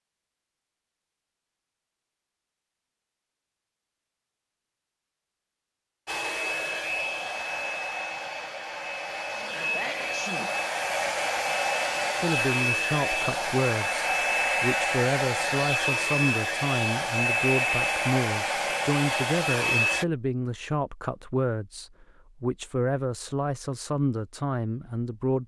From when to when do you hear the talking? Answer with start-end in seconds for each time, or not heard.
12.2-25.4.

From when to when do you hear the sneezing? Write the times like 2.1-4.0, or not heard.
9.3-10.6.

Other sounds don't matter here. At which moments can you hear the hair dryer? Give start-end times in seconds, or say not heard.
6.0-20.1.